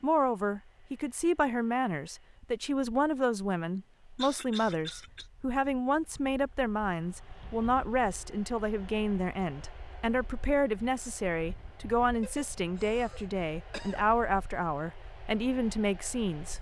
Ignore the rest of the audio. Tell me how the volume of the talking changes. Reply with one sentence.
The loudness of the talking stays about the same.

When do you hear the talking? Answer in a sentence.
The talking can be heard from 0.0 to 16.5 s.